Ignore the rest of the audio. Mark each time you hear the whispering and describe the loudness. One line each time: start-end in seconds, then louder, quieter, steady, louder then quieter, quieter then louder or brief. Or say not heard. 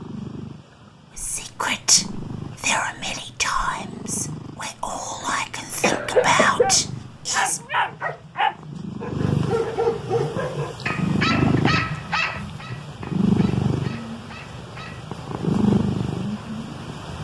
1.1-7.6 quieter then louder.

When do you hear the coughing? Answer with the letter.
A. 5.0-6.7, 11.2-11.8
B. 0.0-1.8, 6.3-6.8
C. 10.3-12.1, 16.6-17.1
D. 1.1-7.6
A.